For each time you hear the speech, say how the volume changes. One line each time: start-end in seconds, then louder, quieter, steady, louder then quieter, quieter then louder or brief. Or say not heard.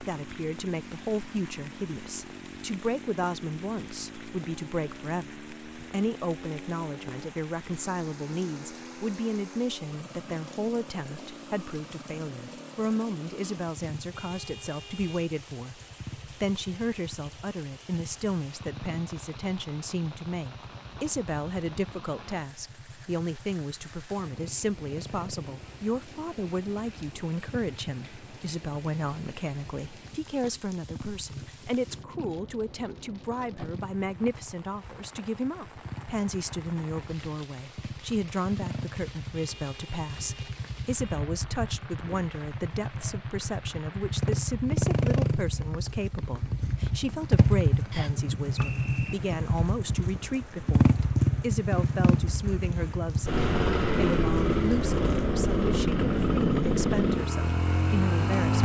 0.0-15.8 steady
16.4-58.5 steady.